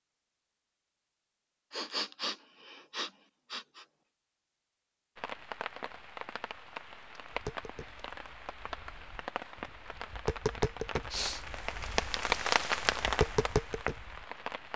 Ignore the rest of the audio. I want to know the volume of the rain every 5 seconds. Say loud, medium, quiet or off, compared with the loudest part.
off, medium, loud.